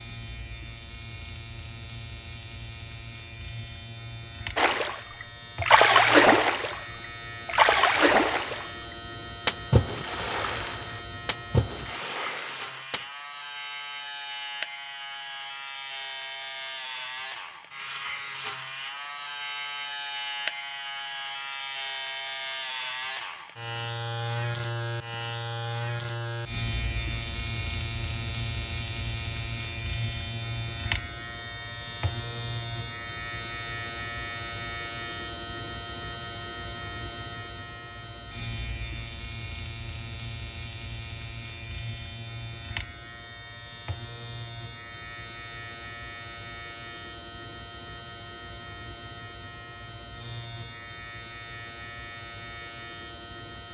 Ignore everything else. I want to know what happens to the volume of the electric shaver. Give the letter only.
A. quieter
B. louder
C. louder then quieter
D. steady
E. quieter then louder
C.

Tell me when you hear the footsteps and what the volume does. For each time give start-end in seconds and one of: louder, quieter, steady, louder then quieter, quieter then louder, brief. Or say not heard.
not heard.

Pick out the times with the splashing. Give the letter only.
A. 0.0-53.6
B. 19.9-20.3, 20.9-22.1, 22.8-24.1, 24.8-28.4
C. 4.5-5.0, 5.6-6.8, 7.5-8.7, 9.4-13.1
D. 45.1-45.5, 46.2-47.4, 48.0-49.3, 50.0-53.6
C.